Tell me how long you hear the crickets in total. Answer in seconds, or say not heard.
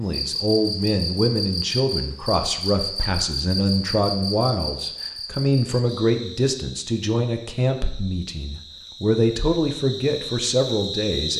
11 s.